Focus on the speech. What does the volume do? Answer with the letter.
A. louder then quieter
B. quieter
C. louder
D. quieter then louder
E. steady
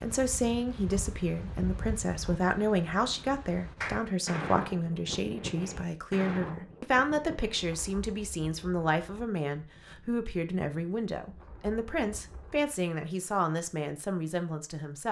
E.